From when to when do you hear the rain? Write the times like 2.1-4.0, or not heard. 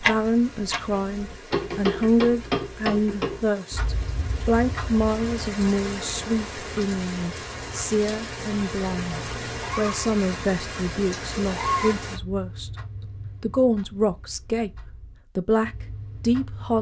0.0-12.2.